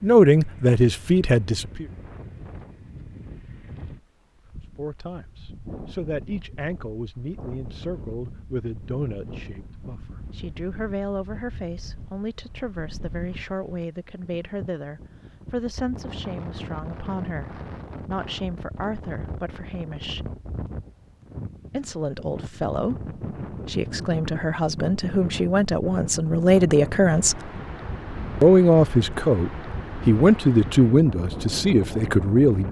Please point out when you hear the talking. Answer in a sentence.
You can hear the talking from 0.0 to 1.9 s, from 4.8 to 20.2 s, from 21.7 to 27.5 s and from 28.4 to 32.6 s.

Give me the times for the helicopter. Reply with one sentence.
You can't hear the helicopter here.